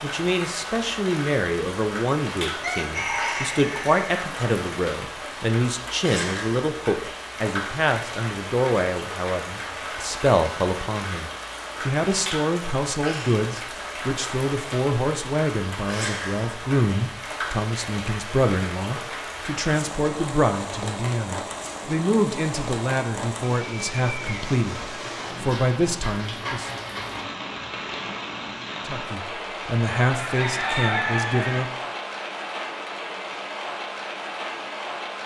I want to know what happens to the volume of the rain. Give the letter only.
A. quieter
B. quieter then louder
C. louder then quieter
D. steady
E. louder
D.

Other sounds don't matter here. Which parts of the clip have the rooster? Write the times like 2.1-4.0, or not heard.
2.6-4.0, 30.1-31.6.